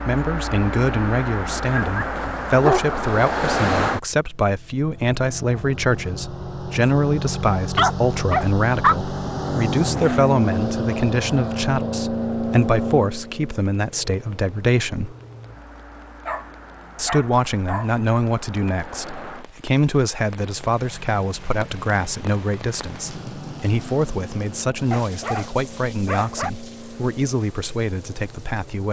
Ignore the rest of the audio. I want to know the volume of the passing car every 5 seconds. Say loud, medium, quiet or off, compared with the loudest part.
loud, loud, loud, quiet, quiet, quiet.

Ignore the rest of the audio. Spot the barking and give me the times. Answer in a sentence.
The barking can be heard from 1.6 to 3.0 s, from 7.8 to 9.0 s, from 16.2 to 17.9 s and from 24.9 to 26.5 s.